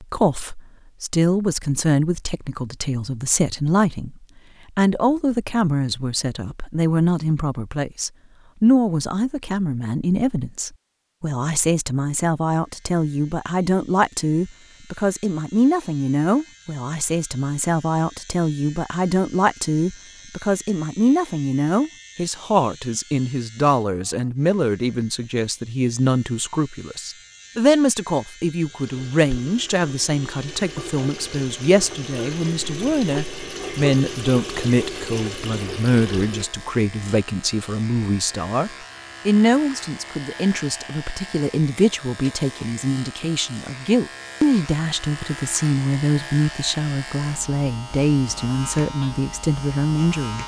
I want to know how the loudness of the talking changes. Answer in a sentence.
The loudness of the talking stays about the same.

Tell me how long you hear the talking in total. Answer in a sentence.
You can hear the talking for 50 seconds altogether.